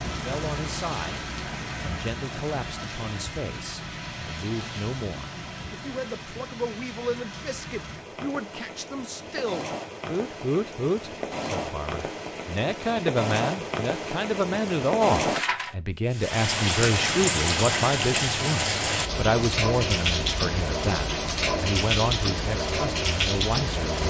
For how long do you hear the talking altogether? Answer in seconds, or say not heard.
24 s.